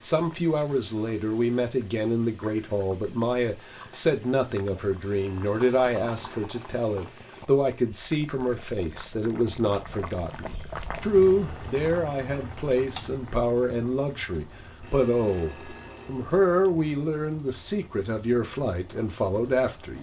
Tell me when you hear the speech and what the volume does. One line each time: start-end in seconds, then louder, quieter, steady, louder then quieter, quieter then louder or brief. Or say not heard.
0.0-19.9 steady.